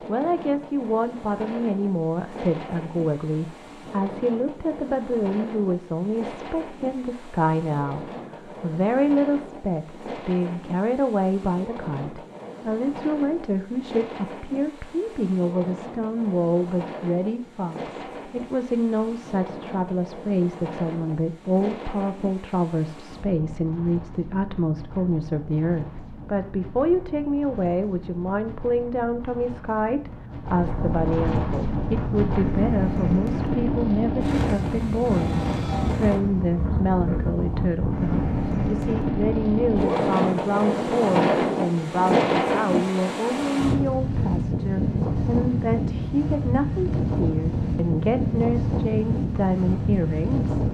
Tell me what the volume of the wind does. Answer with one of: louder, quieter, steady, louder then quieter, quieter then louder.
louder.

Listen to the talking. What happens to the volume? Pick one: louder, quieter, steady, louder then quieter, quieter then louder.
steady.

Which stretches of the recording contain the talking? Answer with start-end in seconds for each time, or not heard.
0.1-50.5.